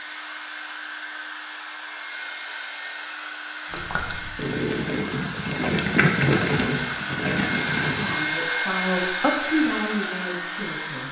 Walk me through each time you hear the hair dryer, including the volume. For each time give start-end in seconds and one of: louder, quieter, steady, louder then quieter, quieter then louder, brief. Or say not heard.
0.0-11.0 louder.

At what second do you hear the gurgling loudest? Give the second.
6 s.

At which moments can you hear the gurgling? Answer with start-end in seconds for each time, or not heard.
3.7-8.2.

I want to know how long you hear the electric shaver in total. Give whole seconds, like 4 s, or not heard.
not heard.